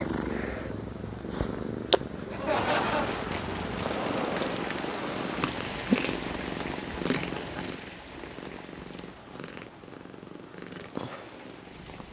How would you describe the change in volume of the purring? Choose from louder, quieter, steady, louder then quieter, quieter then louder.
quieter.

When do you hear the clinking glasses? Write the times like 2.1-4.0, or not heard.
not heard.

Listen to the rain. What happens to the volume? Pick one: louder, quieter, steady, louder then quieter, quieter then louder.
quieter.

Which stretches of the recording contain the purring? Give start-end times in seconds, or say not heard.
0.0-12.0.